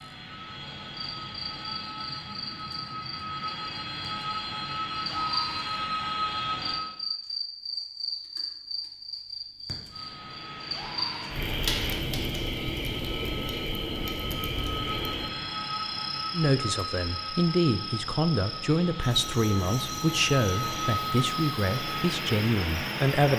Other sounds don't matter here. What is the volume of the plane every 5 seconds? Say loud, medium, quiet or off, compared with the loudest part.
medium, loud, medium, medium, loud.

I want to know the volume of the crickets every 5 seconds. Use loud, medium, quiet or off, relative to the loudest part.
medium, loud, loud, medium, medium.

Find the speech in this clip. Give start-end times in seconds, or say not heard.
16.3-23.3.